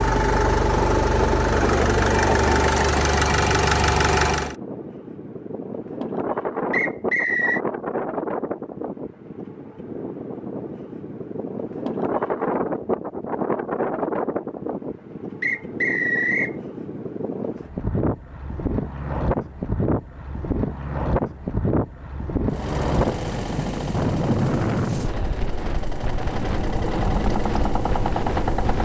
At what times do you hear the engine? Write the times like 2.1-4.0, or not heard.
0.0-4.5, 22.4-28.7.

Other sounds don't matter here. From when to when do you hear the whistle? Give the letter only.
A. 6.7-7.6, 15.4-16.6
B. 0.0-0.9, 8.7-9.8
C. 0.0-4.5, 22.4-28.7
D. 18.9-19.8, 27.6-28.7
A.